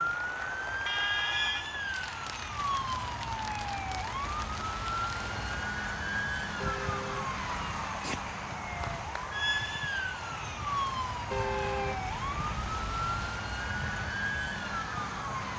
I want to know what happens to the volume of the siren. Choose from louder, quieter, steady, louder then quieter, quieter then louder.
steady.